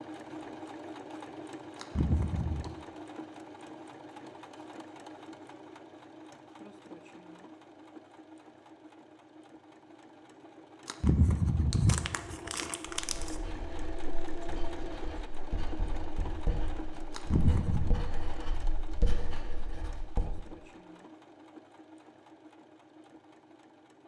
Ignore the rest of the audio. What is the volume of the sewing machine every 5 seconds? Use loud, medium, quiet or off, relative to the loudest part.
loud, medium, loud, loud, medium.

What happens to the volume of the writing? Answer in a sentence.
The loudness of the writing goes up.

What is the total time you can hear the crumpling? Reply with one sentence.
You can hear the crumpling for 4 seconds altogether.